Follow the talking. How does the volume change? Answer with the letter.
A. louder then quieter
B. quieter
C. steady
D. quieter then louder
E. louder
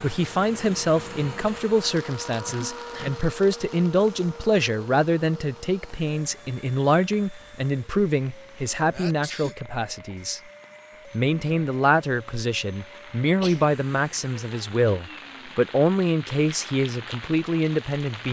C.